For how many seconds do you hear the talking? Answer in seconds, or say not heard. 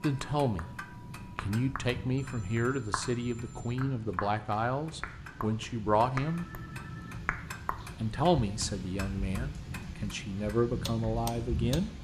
10 s.